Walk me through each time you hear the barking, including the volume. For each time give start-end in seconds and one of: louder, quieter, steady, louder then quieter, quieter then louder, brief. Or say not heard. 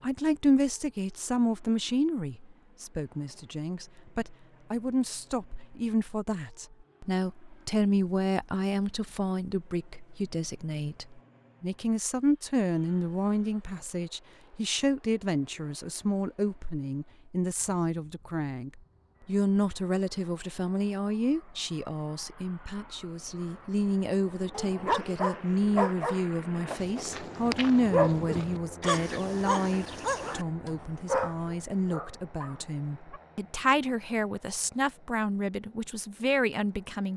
24.5-33.2 quieter.